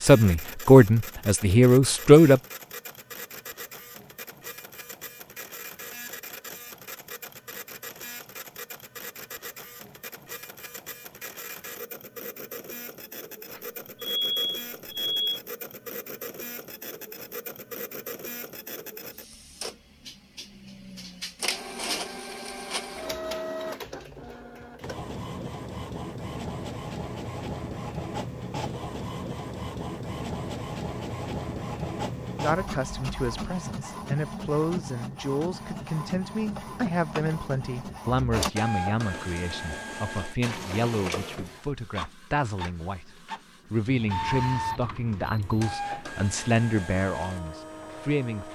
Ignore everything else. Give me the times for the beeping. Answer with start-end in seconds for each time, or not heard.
13.5-15.4, 43.9-45.8.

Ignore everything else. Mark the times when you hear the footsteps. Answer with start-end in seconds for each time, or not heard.
not heard.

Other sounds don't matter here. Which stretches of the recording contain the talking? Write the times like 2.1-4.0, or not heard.
0.0-2.4, 32.4-48.4.